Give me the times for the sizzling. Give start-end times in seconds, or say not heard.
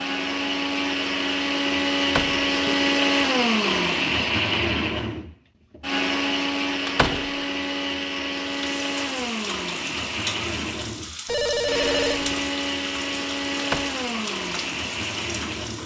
8.4-15.8.